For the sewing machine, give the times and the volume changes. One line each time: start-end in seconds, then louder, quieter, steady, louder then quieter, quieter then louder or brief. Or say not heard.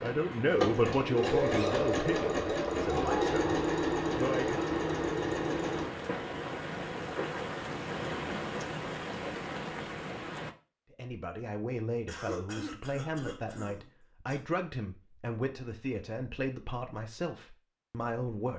0.0-5.9 steady.